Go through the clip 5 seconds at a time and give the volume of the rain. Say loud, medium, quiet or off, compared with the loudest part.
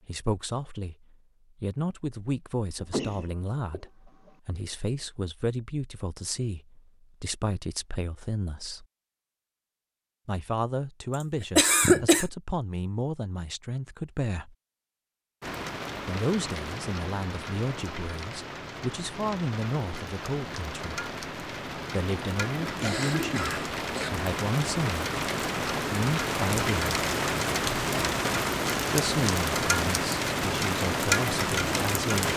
off, off, off, medium, medium, loud, loud.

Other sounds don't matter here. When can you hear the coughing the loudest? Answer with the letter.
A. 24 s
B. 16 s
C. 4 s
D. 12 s
D.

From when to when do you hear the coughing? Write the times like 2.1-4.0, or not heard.
2.8-4.3, 11.6-12.2, 22.6-24.1.